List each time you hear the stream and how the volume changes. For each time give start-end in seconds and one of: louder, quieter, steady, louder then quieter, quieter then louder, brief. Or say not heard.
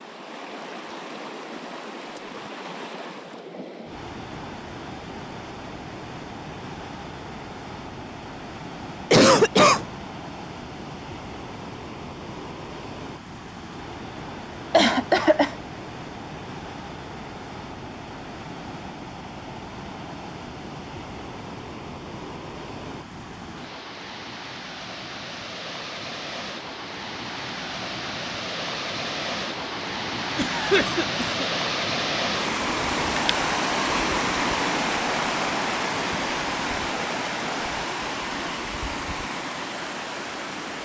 0.0-40.8 louder.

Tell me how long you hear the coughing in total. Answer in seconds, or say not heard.
3 s.